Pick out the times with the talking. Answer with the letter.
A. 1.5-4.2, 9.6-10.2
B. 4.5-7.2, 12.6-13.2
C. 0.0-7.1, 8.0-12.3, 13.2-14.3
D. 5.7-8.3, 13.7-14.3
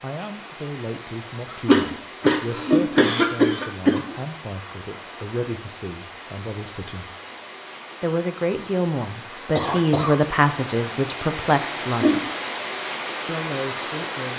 C.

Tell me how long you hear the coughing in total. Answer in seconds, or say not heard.
3 s.